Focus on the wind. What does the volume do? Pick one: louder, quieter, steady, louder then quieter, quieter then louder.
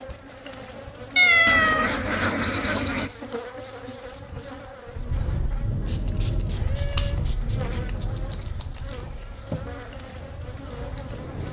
quieter.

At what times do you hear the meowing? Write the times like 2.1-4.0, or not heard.
1.1-1.9, 6.7-7.2.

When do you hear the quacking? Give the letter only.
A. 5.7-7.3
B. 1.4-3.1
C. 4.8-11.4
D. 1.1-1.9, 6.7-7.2
B.